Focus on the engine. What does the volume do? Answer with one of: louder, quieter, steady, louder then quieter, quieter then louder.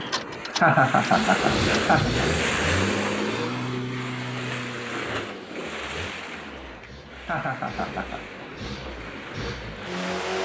quieter then louder.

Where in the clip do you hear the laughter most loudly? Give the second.
1 s.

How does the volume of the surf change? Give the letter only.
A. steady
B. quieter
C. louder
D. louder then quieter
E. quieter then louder
B.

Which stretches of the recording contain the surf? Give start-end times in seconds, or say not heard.
0.0-10.2.